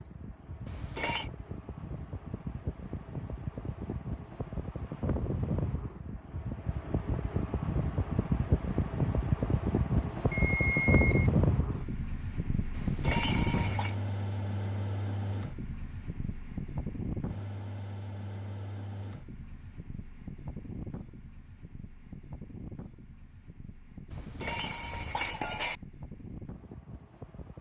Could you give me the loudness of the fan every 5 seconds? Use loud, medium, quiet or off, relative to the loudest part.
medium, loud, loud, medium, quiet, quiet.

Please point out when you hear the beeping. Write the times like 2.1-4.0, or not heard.
10.3-11.3.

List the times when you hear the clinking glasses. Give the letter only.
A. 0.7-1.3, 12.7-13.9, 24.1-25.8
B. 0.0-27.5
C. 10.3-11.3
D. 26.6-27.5
A.